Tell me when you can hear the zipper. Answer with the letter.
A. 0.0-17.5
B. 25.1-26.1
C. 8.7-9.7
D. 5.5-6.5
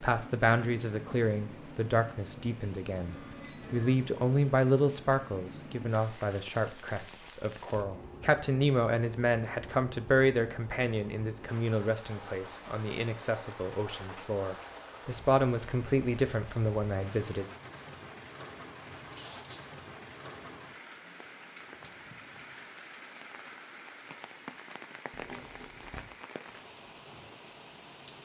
B.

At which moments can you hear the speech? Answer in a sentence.
The speech can be heard from 0.0 to 17.5 s.